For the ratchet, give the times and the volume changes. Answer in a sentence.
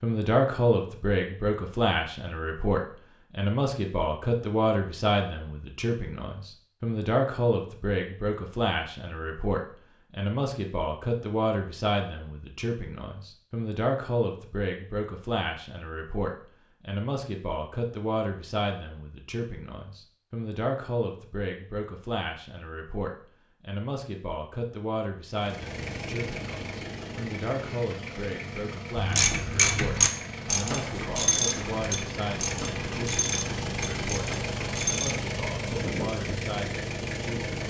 The ratchet can be heard from 28.9 to 35.2 s, getting quieter.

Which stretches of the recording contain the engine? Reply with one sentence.
You can hear the engine from 25.3 to 37.6 s.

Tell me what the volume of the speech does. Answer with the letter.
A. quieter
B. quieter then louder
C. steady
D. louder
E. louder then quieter
A.